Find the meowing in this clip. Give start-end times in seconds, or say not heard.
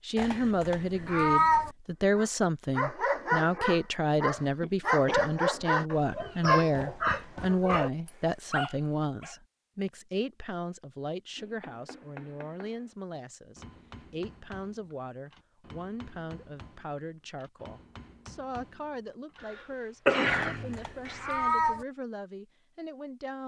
0.1-1.7, 20.2-21.9.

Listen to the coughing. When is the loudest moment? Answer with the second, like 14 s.
20 s.